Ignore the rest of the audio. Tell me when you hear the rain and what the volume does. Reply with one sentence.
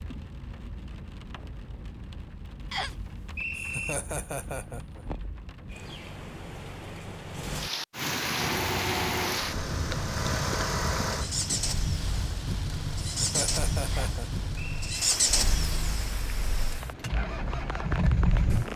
The rain can be heard from 0.0 to 18.7 s, getting louder then quieter.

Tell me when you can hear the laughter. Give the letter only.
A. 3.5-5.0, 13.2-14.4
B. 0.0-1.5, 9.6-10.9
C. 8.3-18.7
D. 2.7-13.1
A.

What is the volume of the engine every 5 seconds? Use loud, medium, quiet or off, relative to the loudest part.
off, loud, loud, loud.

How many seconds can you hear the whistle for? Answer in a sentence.
The whistle can be heard for 2 seconds in total.